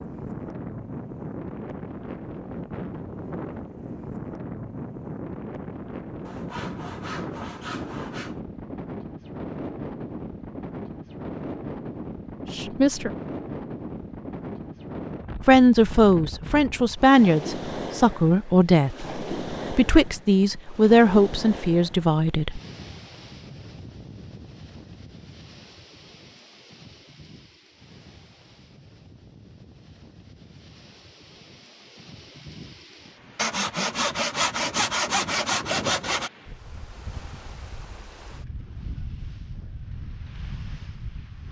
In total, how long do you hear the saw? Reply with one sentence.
The saw can be heard for 5 seconds in total.